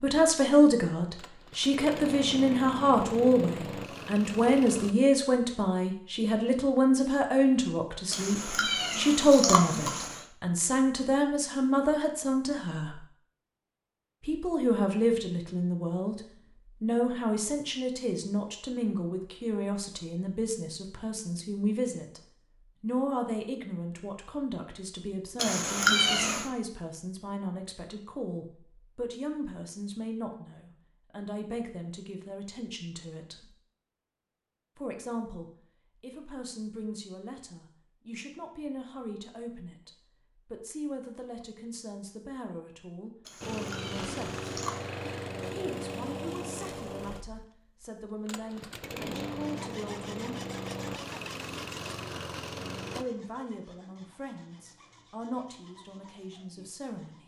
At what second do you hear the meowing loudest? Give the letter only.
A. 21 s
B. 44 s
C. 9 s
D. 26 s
D.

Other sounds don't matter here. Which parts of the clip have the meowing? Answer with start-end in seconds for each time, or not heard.
8.1-10.2, 25.4-26.5, 43.2-44.9.